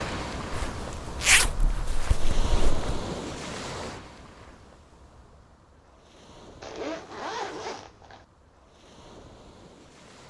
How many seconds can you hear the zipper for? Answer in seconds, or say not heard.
4 s.